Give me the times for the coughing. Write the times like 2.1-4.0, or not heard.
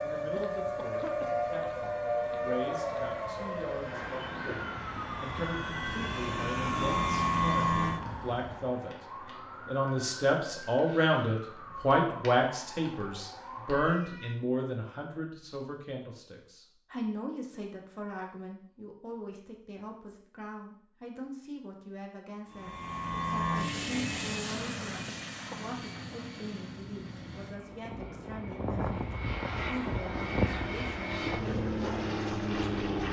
0.3-1.2, 25.1-25.6.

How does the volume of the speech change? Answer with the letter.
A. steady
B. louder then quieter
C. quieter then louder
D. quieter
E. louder
B.